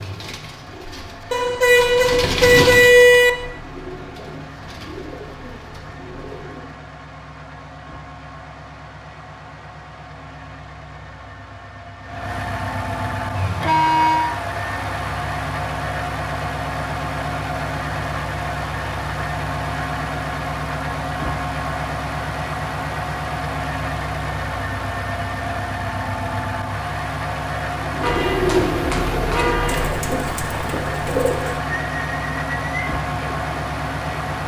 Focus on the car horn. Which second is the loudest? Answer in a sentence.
The volume of the car horn peaks at 3 seconds.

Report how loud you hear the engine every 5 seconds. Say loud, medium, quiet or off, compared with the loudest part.
quiet, quiet, loud, loud, loud, loud, loud.